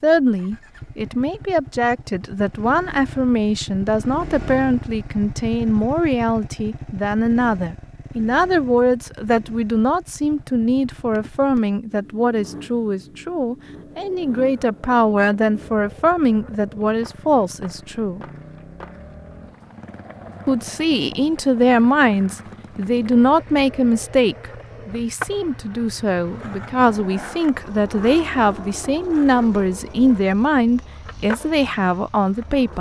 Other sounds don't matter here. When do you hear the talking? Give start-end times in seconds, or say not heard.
0.0-18.2, 20.4-32.7.